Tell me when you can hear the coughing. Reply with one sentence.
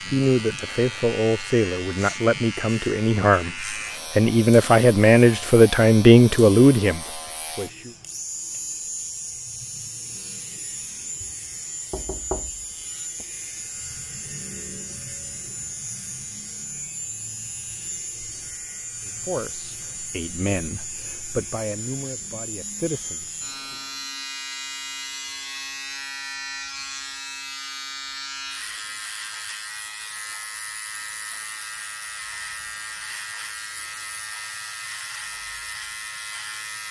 You can't hear the coughing here.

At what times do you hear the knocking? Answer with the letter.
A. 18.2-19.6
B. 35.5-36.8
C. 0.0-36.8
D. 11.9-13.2
D.